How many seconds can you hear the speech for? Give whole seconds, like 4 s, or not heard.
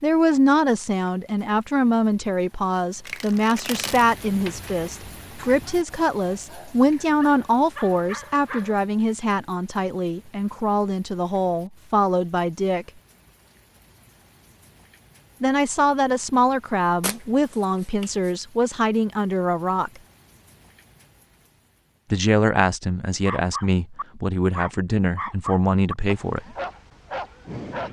22 s.